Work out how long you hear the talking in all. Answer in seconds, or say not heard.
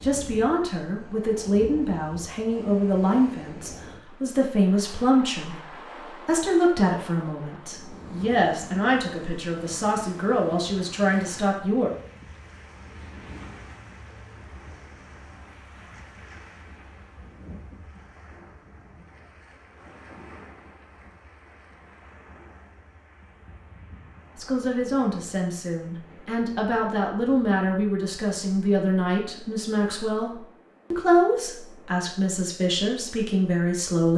21 s.